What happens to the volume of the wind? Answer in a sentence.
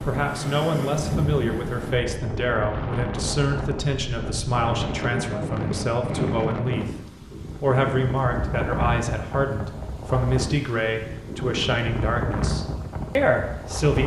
The loudness of the wind stays about the same.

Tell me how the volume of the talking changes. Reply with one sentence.
The volume of the talking stays about the same.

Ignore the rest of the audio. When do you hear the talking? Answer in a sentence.
The talking can be heard from 0.0 to 6.9 s and from 7.6 to 14.0 s.